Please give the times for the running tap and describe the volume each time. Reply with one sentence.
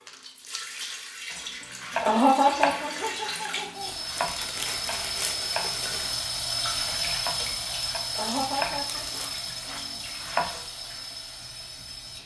The running tap can be heard from 0.0 to 12.2 s, getting louder then quieter.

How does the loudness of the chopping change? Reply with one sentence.
The volume of the chopping goes down, then up.